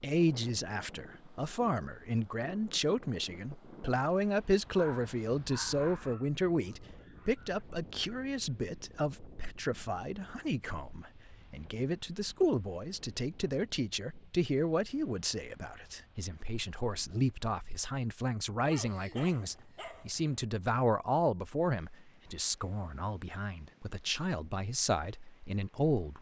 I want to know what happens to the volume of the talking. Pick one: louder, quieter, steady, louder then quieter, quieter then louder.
steady.